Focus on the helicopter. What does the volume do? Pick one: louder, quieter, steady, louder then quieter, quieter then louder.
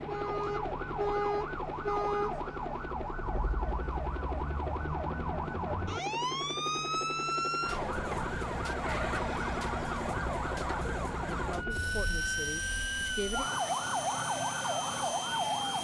steady.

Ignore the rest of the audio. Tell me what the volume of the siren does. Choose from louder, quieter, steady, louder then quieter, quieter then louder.
steady.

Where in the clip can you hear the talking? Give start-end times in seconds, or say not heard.
11.3-13.4.